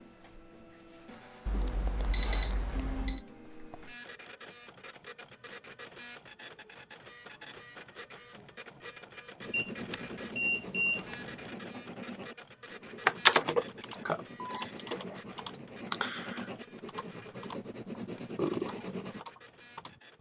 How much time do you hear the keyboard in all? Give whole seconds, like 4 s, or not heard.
7 s.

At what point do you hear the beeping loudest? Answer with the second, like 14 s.
2 s.